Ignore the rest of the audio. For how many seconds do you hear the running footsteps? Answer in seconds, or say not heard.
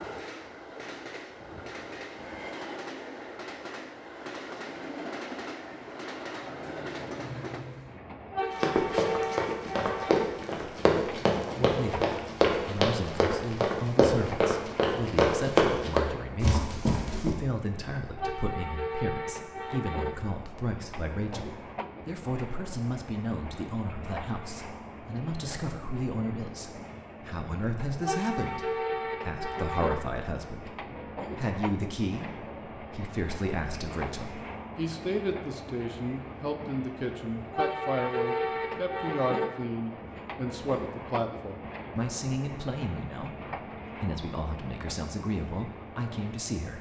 9 s.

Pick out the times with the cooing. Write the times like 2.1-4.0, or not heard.
not heard.